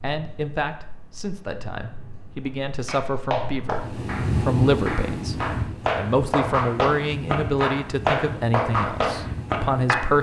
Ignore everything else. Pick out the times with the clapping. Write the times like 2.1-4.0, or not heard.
2.9-10.1.